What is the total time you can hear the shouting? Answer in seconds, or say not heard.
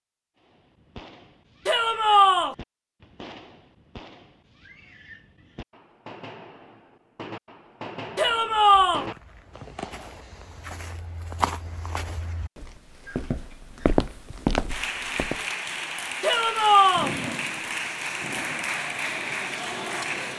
3 s.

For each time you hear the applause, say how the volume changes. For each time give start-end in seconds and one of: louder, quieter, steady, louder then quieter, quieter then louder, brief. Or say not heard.
14.7-20.3 steady.